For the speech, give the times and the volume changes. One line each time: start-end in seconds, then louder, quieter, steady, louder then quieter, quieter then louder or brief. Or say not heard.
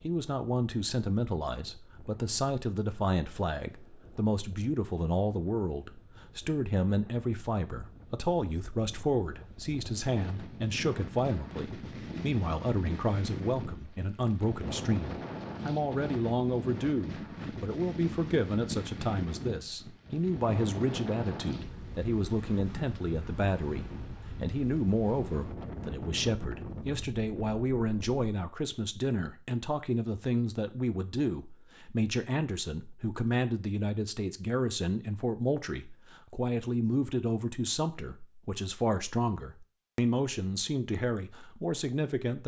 0.0-42.4 steady.